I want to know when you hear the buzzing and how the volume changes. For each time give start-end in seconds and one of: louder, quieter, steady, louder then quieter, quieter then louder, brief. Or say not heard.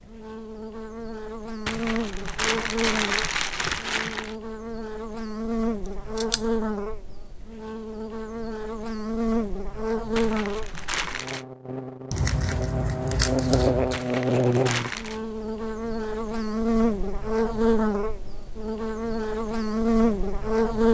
0.0-20.8 louder.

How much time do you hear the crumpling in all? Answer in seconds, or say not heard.
5 s.